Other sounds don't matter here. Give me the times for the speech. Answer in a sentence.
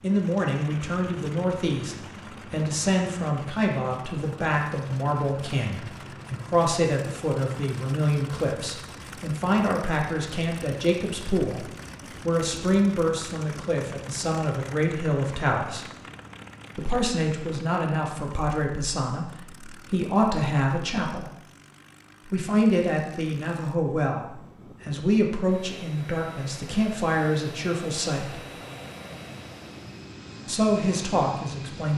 The speech can be heard from 0.0 to 15.9 s, from 16.8 to 21.4 s, from 22.2 to 28.4 s and from 30.4 to 31.9 s.